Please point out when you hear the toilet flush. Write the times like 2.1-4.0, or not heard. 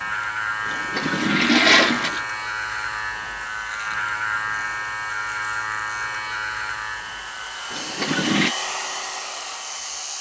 0.7-2.2, 7.7-8.6.